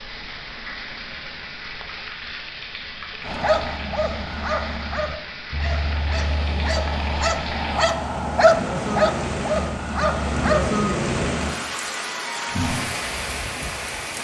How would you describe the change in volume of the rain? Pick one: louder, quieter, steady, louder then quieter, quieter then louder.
louder.